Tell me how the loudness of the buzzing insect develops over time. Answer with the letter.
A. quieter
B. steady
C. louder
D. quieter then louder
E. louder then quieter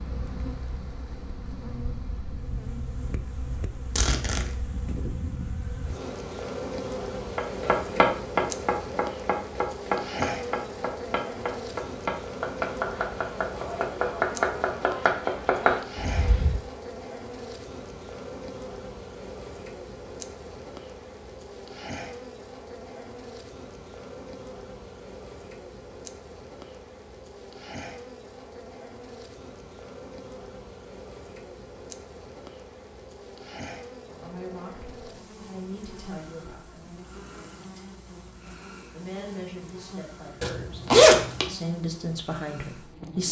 A.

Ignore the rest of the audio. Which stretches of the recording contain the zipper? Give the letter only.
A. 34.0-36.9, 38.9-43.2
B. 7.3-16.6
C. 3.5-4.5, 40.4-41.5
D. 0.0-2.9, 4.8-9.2
C.